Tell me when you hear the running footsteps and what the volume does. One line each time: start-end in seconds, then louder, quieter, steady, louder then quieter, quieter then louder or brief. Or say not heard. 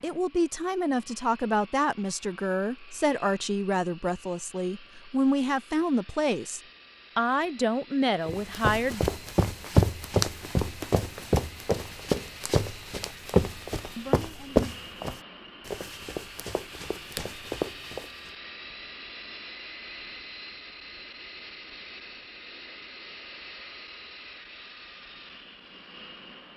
8.2-18.3 quieter.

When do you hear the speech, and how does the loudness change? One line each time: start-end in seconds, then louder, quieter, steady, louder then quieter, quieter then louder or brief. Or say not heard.
0.0-9.0 steady
13.9-14.7 brief.